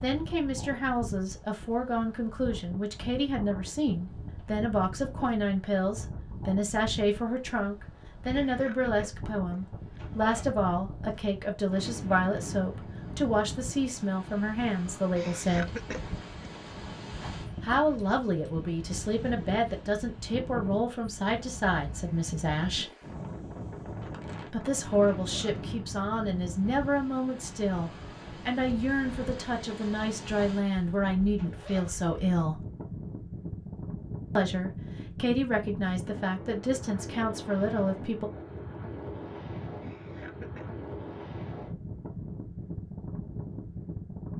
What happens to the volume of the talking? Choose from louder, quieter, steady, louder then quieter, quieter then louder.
steady.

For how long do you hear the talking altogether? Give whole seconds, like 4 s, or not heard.
33 s.